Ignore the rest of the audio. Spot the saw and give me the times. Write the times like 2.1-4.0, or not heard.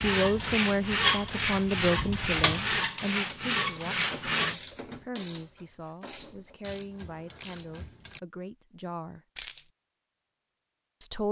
0.0-4.5.